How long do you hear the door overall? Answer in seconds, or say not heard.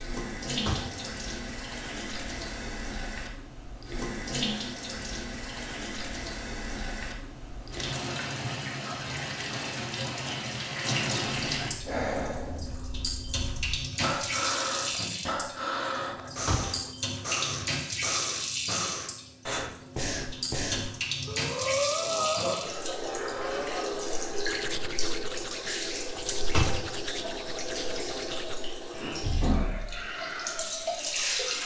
2 s.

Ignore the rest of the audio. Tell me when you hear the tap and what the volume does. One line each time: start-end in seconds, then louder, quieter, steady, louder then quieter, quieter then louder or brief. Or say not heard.
0.0-31.6 steady.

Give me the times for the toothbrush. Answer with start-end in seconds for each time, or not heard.
24.4-28.6.